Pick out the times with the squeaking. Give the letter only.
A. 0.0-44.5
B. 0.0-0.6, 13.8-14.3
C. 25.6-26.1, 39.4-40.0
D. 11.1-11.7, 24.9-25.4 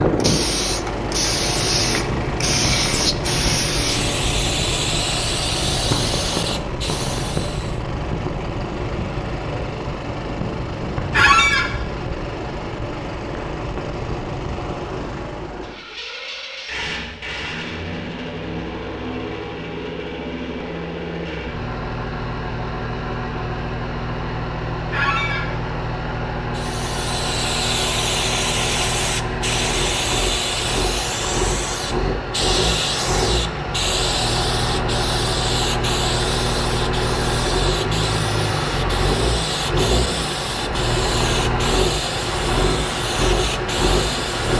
D.